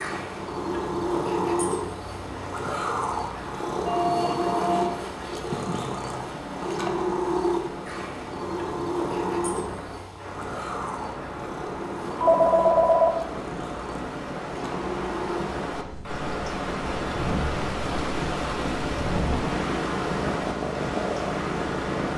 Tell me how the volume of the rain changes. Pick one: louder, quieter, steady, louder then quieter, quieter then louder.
louder.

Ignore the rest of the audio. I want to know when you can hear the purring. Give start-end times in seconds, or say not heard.
0.0-22.1.